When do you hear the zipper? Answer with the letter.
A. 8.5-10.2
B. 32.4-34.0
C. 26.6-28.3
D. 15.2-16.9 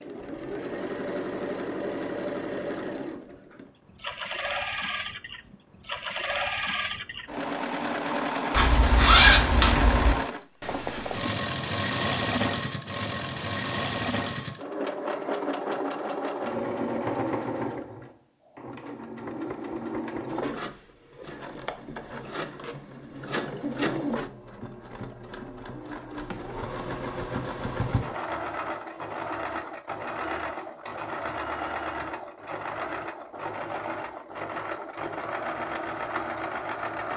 A.